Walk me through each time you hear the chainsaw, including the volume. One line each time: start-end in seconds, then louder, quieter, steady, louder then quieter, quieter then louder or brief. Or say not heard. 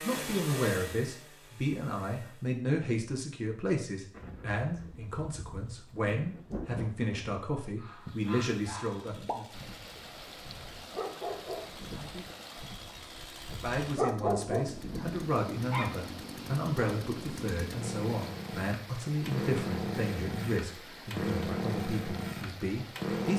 0.0-2.6 brief
8.0-23.3 louder.